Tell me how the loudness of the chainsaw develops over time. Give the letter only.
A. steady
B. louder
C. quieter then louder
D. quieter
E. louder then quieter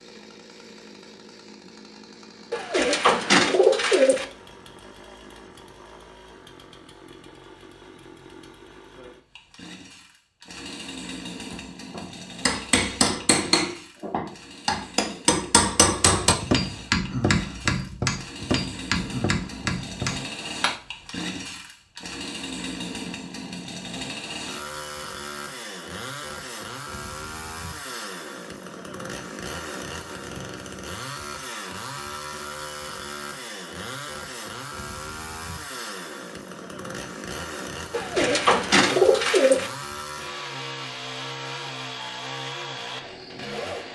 B.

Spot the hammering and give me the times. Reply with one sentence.
The hammering can be heard from 11.5 to 20.8 s.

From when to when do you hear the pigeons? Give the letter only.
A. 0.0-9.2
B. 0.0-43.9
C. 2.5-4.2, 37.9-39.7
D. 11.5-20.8
C.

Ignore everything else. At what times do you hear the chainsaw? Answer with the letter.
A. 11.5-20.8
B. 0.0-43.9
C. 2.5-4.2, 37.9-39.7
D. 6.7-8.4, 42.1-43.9
B.